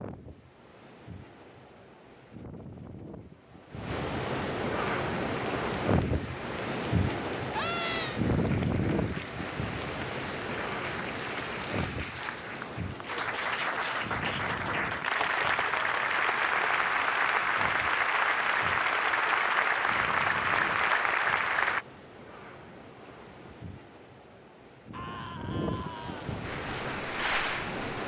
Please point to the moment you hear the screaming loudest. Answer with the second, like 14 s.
8 s.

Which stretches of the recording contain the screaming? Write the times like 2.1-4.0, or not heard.
7.5-8.2, 24.9-26.4.